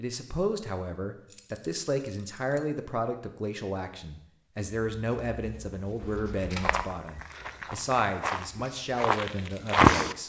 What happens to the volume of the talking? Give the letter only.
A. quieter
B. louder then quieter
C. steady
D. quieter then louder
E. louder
C.